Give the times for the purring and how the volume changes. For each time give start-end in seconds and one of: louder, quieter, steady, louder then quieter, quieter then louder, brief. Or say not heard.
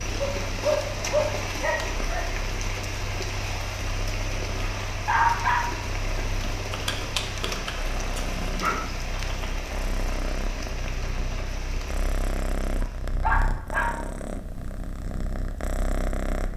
0.0-16.5 louder.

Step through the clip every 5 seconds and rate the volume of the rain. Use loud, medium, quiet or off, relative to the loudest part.
loud, loud, medium, off.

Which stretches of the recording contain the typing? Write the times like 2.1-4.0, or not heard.
not heard.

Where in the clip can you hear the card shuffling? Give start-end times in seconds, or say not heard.
6.7-8.7.